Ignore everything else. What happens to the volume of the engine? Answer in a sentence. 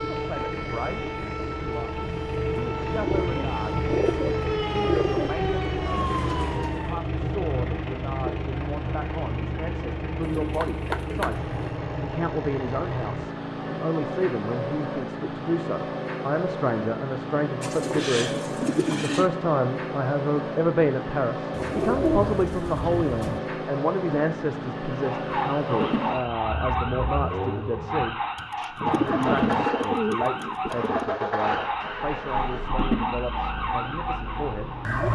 The loudness of the engine stays about the same.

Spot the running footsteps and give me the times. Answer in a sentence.
You can't hear the running footsteps here.